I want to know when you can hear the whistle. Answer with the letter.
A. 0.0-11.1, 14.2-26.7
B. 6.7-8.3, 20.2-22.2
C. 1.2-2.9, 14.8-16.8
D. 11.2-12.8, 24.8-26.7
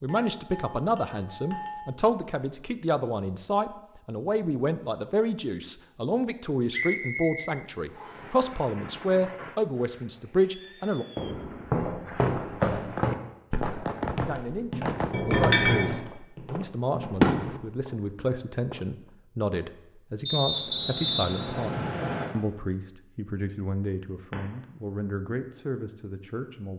B.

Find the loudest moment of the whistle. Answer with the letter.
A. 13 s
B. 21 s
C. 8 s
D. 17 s
B.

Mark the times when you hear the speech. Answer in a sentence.
The speech can be heard from 0.0 to 11.1 s and from 14.2 to 26.7 s.